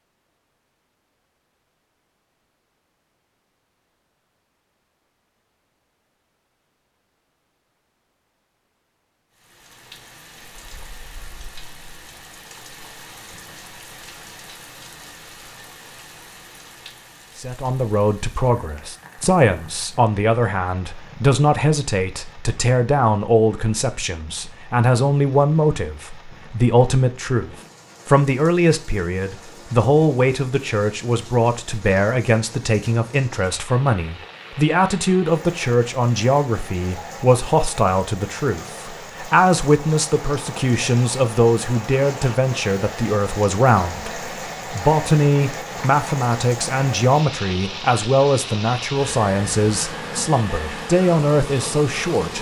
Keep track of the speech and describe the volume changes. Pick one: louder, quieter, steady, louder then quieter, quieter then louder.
steady.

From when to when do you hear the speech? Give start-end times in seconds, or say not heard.
17.4-52.3.